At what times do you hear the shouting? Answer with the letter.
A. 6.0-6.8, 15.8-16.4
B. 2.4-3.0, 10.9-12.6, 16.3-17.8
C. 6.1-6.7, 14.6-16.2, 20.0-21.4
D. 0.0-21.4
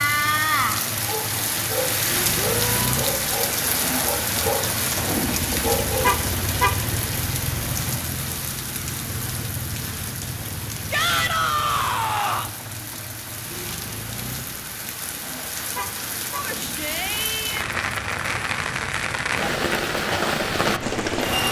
B.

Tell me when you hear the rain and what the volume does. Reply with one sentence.
You can hear the rain from 0.0 to 21.4 s, getting quieter then louder.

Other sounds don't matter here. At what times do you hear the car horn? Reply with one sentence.
You can hear the car horn from 6.0 to 6.8 s and from 15.8 to 16.4 s.